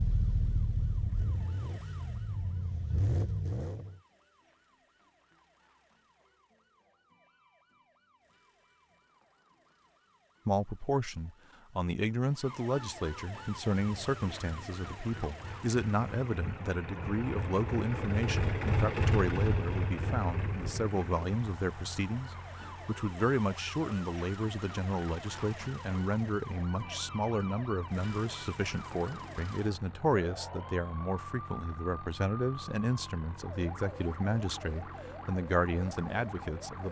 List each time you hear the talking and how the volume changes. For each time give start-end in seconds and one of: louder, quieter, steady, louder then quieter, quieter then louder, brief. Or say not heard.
10.4-36.8 steady.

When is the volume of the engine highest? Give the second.
19 s.